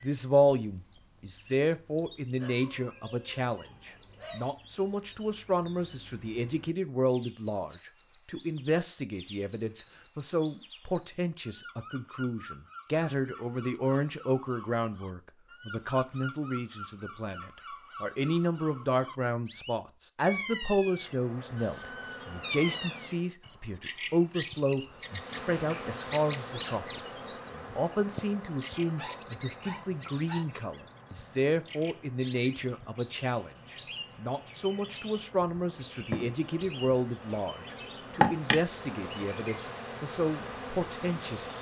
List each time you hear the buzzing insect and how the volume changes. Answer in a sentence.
The buzzing insect can be heard briefly from 20.9 to 23.4 s; and from 24.9 to 41.5 s, getting quieter then louder.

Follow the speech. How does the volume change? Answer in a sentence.
The volume of the speech stays about the same.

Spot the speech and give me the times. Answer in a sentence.
You can hear the speech from 0.0 to 41.5 s.